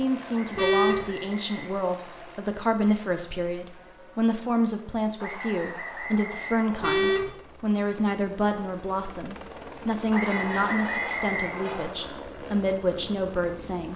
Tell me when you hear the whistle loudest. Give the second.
11 s.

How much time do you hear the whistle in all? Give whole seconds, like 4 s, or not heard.
6 s.